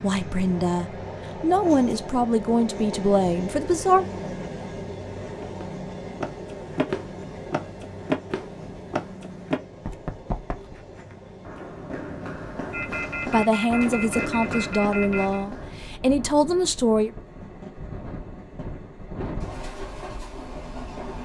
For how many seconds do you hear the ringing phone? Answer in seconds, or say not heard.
3 s.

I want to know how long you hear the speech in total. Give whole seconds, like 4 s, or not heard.
8 s.